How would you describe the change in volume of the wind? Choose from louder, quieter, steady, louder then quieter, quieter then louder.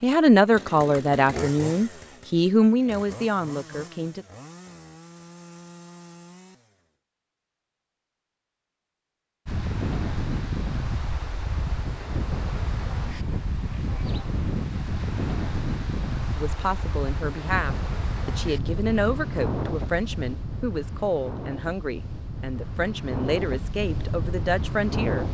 steady.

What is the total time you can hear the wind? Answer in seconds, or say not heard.
16 s.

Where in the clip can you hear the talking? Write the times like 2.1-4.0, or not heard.
0.0-4.2, 16.4-25.2.